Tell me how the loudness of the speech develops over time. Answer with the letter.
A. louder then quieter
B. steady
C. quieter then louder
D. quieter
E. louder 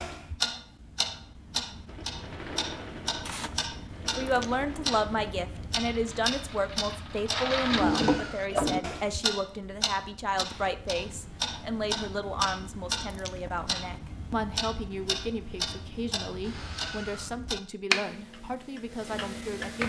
D.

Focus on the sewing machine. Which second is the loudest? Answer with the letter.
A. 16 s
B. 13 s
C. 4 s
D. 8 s
D.